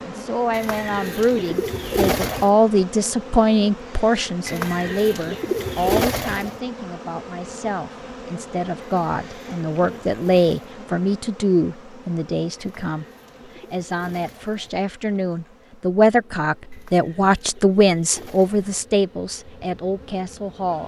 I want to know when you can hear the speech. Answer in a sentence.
You can hear the speech from 0.1 to 20.8 s.